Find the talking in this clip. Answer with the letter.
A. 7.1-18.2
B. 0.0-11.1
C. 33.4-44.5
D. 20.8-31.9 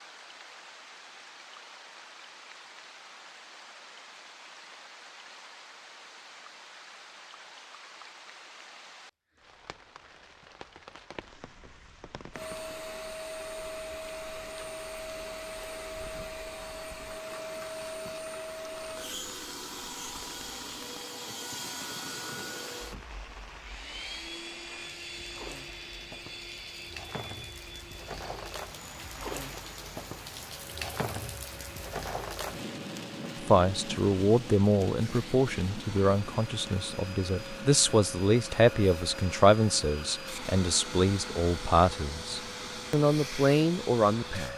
C.